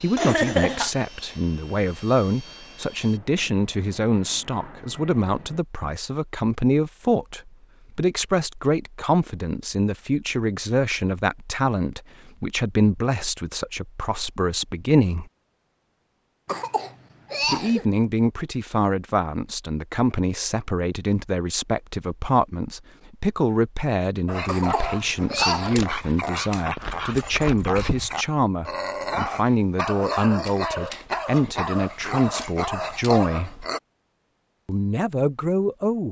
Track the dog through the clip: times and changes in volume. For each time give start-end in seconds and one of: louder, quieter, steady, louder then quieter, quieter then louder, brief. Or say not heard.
24.2-33.8 steady.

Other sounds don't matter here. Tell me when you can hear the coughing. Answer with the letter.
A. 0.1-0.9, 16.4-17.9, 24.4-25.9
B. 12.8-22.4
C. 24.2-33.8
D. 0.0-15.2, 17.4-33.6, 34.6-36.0
A.